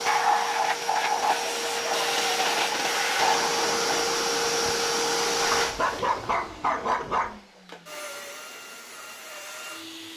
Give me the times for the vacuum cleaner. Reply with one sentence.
You can hear the vacuum cleaner from 0.0 to 10.1 s.